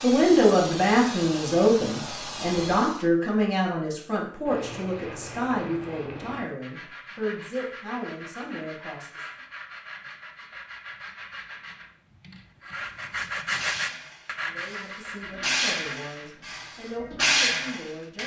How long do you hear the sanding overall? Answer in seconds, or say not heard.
12 s.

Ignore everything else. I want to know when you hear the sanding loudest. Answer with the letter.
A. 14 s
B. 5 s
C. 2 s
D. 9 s
A.